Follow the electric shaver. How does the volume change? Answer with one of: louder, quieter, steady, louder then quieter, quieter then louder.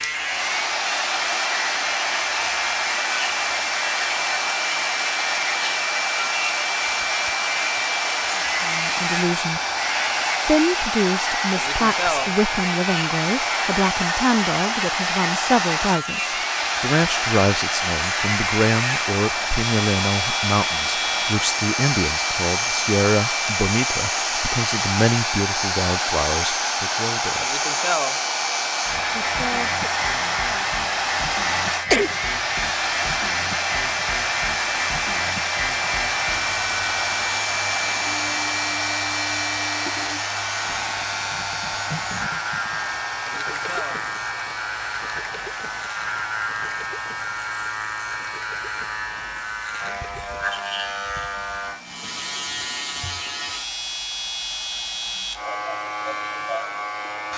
steady.